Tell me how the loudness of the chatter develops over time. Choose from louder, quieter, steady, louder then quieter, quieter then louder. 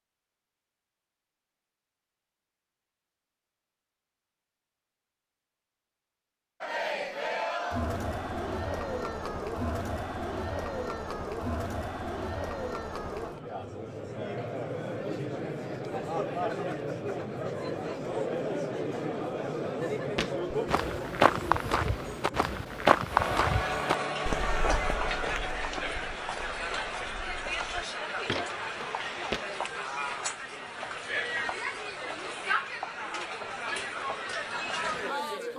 steady.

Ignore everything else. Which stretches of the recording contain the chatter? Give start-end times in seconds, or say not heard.
6.6-35.5.